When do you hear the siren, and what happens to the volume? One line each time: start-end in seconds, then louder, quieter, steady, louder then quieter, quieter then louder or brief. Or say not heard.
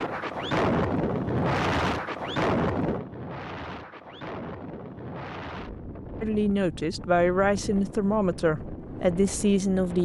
not heard.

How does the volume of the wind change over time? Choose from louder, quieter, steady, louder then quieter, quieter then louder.
quieter.